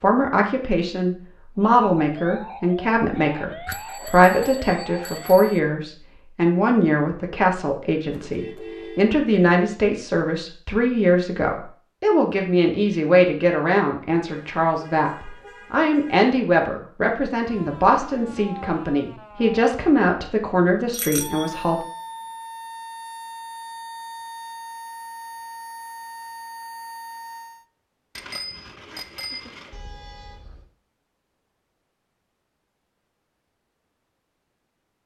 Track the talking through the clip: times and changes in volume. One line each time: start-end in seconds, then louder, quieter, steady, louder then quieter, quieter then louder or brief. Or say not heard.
0.0-21.8 steady.